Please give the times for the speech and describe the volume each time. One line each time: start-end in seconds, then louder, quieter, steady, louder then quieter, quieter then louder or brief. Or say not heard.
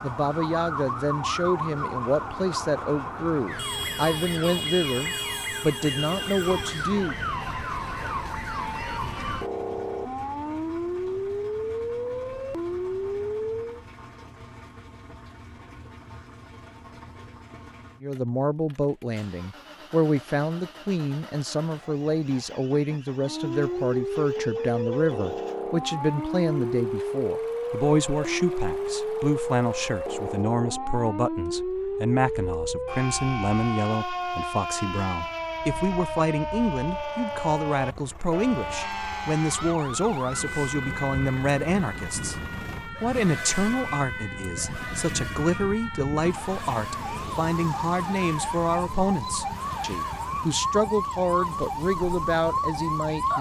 0.0-7.2 steady
18.0-53.3 steady.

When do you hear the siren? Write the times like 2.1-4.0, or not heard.
0.0-13.8, 23.2-53.3.